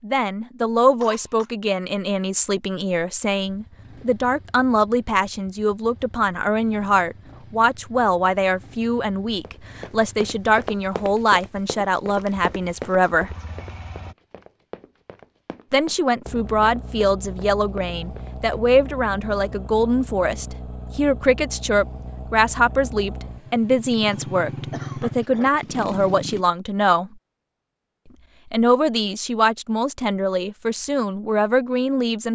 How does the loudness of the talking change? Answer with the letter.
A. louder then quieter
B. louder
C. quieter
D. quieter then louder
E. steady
E.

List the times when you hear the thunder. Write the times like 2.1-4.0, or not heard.
not heard.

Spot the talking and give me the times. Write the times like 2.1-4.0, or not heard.
0.0-13.3, 15.7-27.1, 28.5-32.3.